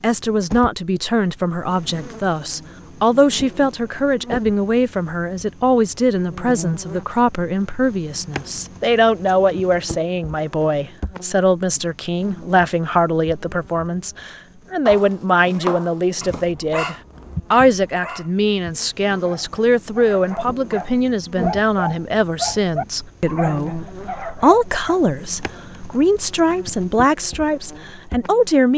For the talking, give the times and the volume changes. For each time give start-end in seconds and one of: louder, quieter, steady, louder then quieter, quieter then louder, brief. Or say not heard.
0.0-28.7 steady.